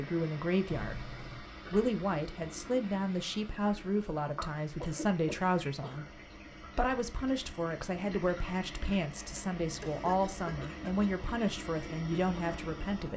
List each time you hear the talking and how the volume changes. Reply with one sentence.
You can hear the talking from 0.0 to 13.1 s, at a steady volume.